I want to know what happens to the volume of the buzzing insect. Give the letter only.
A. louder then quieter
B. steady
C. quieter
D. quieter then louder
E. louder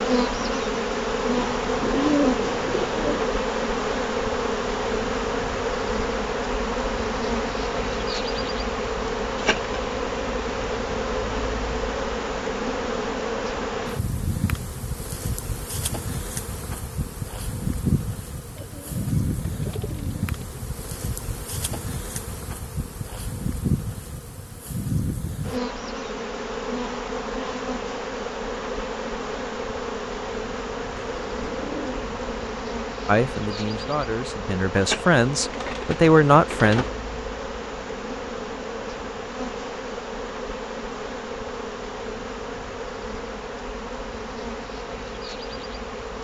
C.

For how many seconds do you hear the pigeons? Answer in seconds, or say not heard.
7 s.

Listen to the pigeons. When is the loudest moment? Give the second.
2 s.